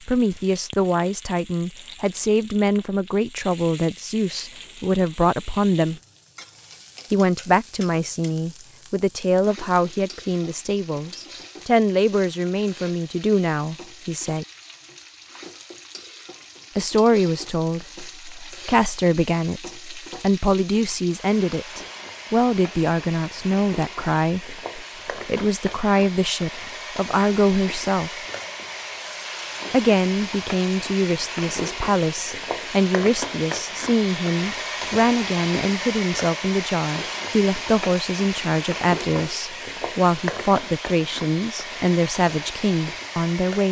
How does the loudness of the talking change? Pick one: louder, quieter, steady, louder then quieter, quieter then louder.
steady.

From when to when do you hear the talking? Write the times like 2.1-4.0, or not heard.
0.1-6.0, 7.1-14.4, 16.8-28.1, 29.7-43.6.